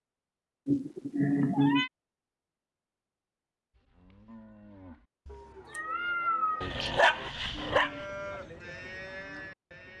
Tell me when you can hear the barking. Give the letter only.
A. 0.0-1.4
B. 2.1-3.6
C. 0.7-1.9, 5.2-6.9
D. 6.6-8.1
D.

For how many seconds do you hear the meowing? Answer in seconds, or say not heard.
3 s.